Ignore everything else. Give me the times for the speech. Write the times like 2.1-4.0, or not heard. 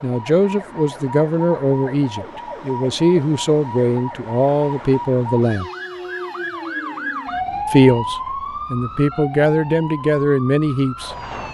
0.0-5.7, 7.7-11.5.